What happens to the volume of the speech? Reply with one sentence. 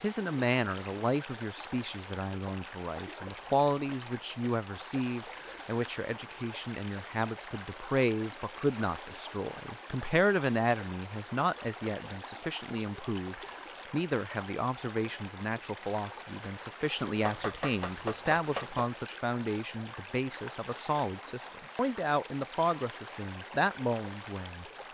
The volume of the speech stays about the same.